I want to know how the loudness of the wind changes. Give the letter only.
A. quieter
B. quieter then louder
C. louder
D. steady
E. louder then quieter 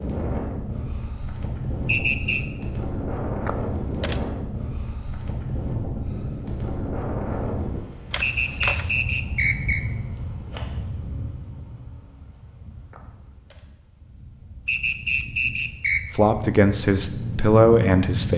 B.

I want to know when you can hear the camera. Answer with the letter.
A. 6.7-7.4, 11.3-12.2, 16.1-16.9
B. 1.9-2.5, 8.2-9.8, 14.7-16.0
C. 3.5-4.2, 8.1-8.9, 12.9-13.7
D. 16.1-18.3
C.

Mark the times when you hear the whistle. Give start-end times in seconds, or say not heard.
1.9-2.5, 8.2-9.8, 14.7-16.0.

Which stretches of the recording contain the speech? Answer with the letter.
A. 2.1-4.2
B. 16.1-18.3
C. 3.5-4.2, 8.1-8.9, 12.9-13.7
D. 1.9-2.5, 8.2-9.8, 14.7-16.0
B.